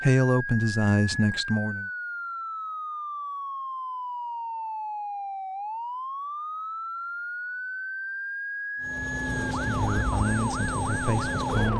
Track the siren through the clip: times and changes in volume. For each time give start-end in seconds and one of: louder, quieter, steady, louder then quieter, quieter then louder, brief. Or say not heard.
0.1-11.7 steady.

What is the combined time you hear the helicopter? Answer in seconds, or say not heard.
3 s.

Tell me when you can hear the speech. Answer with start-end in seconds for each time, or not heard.
0.0-1.9, 9.3-11.7.